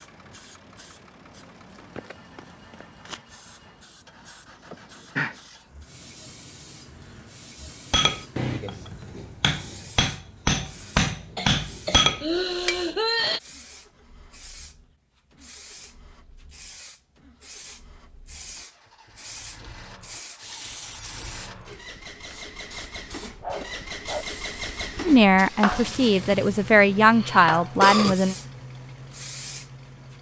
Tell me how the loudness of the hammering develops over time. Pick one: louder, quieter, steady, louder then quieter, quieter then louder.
louder.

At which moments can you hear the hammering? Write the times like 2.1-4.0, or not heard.
7.9-12.8.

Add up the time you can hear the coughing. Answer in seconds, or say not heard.
4 s.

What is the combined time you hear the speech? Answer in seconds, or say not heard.
3 s.